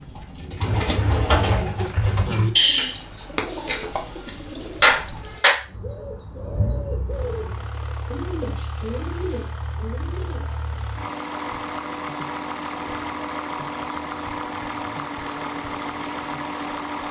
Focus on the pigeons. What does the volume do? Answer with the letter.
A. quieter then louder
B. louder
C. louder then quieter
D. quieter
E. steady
D.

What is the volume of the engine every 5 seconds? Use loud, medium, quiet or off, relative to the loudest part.
quiet, medium, loud, loud.